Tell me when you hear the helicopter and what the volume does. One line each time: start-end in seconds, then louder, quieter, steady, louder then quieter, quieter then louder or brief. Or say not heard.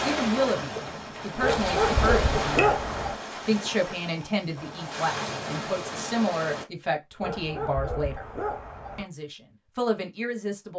not heard.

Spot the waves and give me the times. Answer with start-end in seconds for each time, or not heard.
0.0-6.7.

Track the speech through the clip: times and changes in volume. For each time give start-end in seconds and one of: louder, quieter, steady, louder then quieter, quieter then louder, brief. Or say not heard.
0.0-8.2 steady
8.9-10.7 brief.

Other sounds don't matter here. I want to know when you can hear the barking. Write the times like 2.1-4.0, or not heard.
1.4-3.1, 7.2-9.1.